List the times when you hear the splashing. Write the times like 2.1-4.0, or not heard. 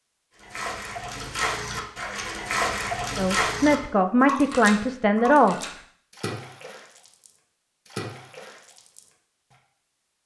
0.3-9.6.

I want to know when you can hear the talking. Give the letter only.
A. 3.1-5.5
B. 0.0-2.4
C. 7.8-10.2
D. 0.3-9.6
A.